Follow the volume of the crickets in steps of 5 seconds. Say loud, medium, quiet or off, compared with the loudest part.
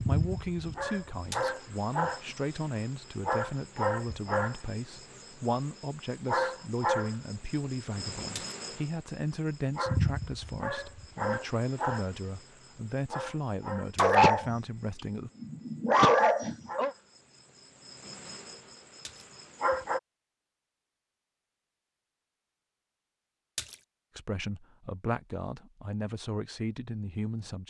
loud, loud, loud, medium, off, off.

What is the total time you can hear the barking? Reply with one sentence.
You can hear the barking for 2 seconds altogether.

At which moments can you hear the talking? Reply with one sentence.
The talking can be heard from 0.0 to 15.3 s and from 24.1 to 27.6 s.